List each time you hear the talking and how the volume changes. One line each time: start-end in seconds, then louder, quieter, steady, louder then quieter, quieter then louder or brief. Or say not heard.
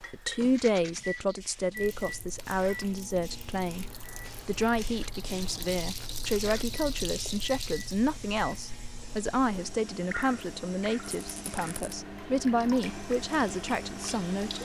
0.0-14.6 steady.